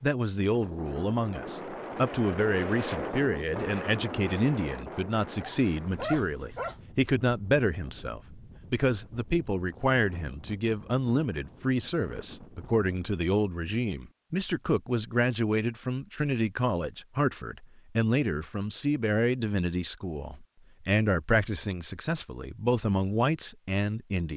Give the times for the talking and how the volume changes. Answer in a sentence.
You can hear the talking from 0.0 to 24.3 s, at a steady volume.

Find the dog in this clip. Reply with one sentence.
You can hear the dog from 5.3 to 6.8 s.